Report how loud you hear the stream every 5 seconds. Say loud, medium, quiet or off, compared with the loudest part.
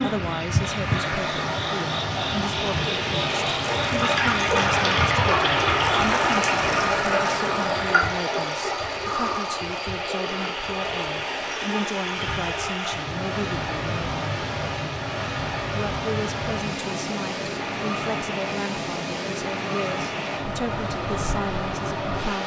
loud, loud, medium, medium, medium.